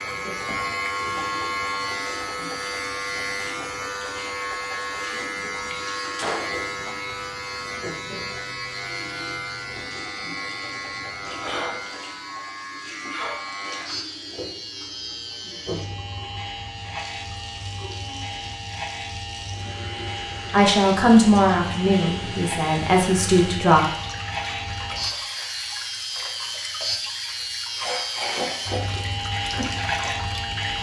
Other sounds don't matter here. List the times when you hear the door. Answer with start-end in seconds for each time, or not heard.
6.0-7.0.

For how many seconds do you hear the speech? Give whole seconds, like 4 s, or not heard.
3 s.